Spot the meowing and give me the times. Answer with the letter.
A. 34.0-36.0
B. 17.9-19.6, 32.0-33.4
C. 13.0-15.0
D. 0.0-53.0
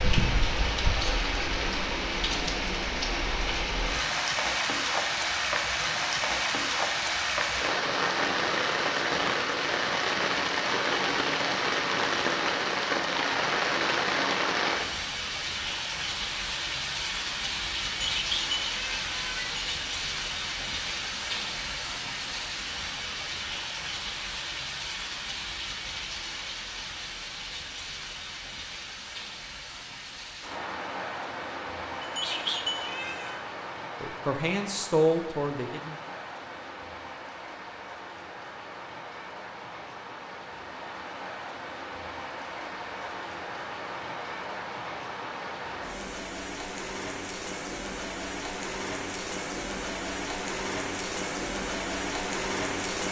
B.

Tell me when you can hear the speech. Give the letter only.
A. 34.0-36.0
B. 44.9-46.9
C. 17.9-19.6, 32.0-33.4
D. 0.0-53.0
A.